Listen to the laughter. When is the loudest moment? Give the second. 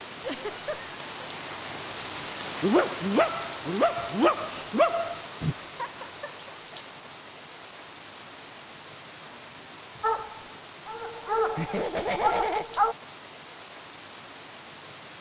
12 s.